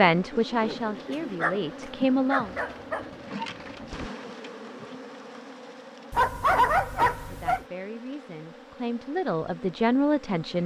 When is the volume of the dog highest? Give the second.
7 s.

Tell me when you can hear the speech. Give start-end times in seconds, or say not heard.
0.0-2.5, 7.2-10.6.